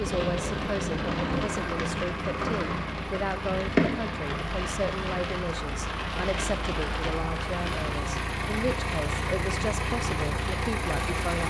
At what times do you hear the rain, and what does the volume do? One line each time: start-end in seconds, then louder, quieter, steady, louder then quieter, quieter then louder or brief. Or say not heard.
0.0-11.4 quieter.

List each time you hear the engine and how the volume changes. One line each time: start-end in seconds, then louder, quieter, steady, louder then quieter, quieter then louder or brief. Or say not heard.
0.0-11.4 louder.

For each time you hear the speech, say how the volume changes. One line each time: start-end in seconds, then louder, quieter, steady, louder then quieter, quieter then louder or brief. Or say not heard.
0.0-11.4 steady.